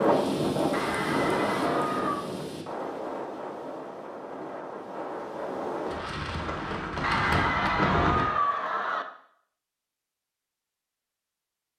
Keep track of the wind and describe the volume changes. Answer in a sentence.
The volume of the wind goes down, then up.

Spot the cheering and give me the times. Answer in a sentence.
The cheering can be heard from 0.7 to 2.2 s and from 7.0 to 9.1 s.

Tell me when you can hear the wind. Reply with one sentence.
You can hear the wind from 0.0 to 8.2 s.